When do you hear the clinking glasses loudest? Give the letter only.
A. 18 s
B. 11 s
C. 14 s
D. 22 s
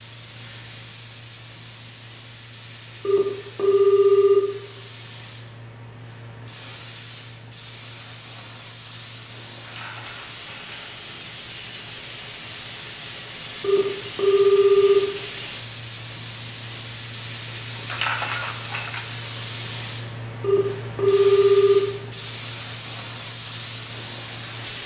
A.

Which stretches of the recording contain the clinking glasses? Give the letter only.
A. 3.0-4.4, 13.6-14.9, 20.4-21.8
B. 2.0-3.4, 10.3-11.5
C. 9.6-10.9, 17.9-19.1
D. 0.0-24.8
C.